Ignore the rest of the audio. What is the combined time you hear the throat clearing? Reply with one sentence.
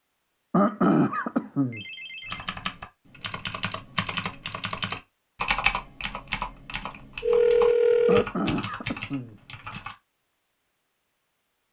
You can hear the throat clearing for 3 seconds altogether.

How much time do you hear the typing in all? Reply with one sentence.
You can hear the typing for 8 seconds altogether.